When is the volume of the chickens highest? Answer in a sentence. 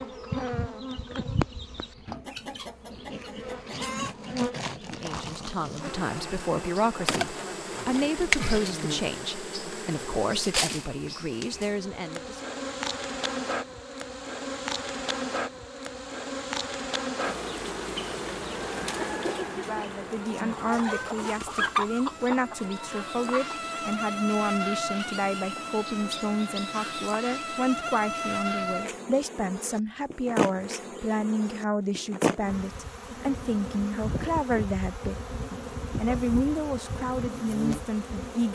The loudest moment of the chickens is at 22 seconds.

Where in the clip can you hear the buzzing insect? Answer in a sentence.
The buzzing insect can be heard from 0.0 to 38.5 s.